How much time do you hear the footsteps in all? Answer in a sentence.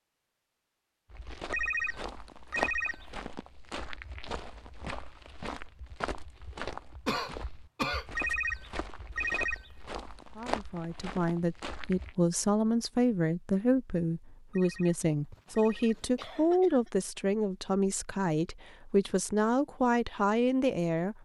The footsteps can be heard for 11 seconds in total.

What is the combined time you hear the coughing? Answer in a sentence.
You can hear the coughing for 3 seconds altogether.